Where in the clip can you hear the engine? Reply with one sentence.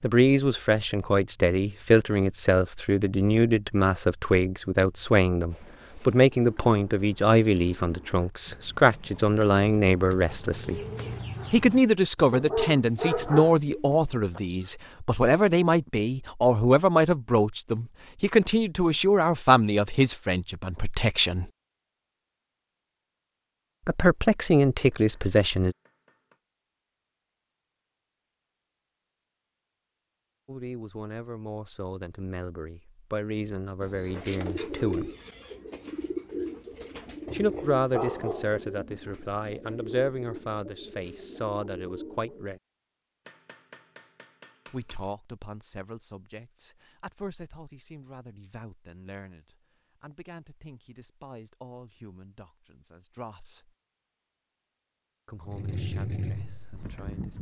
The engine can be heard from 55.5 to 57.3 s.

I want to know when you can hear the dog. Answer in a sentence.
The dog can be heard from 12.3 to 13.9 s and from 37.2 to 38.6 s.